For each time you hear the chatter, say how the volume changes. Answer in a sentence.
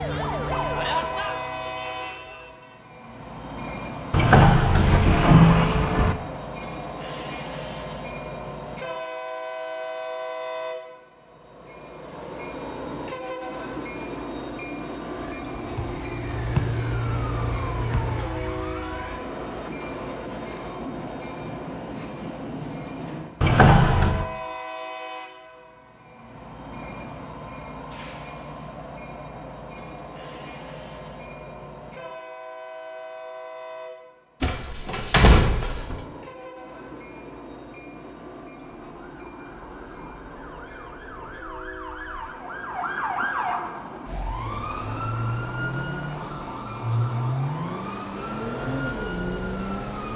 You can't hear the chatter here.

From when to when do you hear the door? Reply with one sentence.
You can hear the door from 4.1 to 6.2 s, from 23.4 to 24.2 s and from 34.4 to 36.0 s.